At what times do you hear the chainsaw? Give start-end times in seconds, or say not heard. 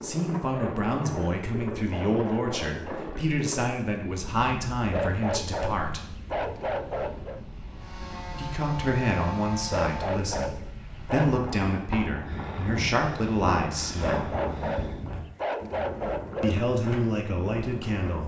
7.8-10.2.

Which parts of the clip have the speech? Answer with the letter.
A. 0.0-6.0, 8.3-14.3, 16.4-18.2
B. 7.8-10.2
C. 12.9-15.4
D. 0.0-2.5
A.